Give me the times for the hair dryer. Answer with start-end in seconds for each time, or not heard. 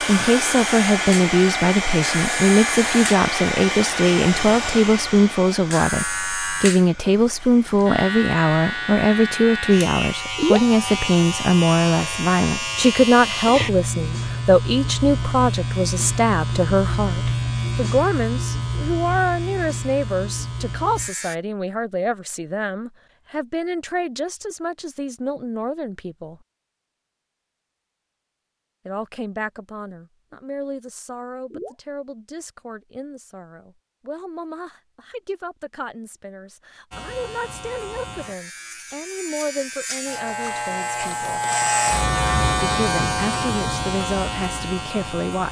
0.0-8.0.